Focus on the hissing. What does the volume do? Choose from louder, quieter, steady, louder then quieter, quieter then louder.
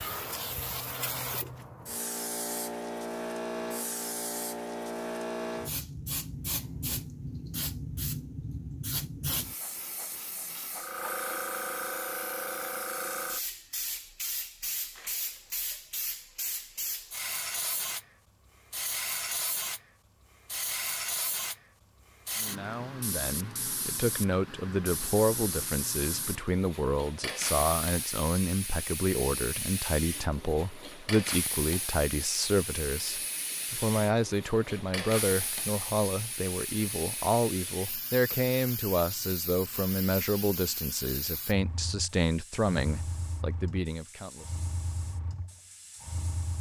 quieter.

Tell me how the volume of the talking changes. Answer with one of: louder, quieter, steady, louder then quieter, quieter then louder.
steady.